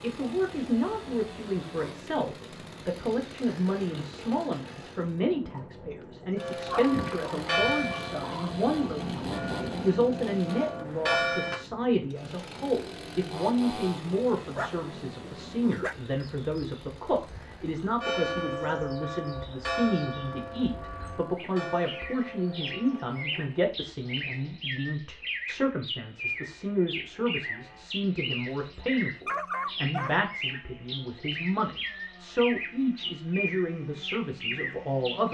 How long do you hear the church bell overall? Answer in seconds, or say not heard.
11 s.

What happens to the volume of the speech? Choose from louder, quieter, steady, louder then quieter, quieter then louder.
steady.